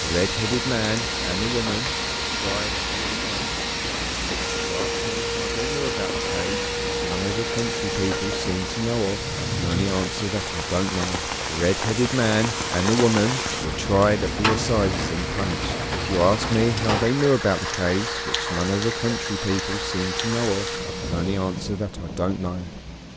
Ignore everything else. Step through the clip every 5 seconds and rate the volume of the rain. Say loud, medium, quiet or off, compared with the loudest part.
medium, medium, loud, loud, medium.